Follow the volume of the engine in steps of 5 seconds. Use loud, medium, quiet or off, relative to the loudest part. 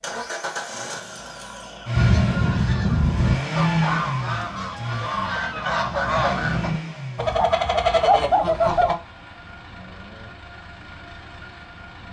loud, medium, quiet.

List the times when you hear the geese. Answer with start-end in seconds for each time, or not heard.
1.9-8.9.